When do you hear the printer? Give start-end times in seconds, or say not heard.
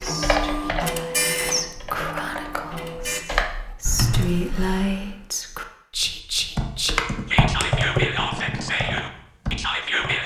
0.0-3.2.